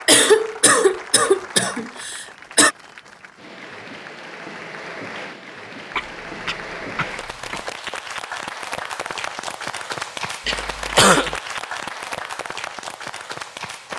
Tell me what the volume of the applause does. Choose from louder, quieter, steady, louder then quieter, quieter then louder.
louder.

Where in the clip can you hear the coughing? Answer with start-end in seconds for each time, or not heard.
0.1-2.7, 6.0-7.7, 10.4-11.3.